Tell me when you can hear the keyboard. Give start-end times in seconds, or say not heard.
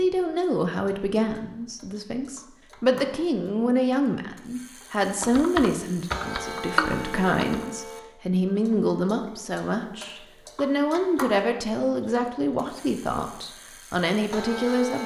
5.0-7.7.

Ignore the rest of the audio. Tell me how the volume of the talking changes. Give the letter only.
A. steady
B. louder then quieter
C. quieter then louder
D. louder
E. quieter
A.